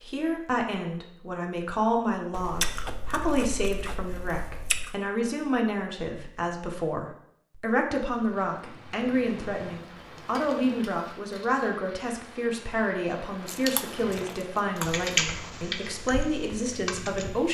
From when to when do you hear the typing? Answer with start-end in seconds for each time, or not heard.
14.8-17.4.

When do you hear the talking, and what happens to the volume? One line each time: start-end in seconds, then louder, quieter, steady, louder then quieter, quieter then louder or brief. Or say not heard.
0.0-17.4 steady.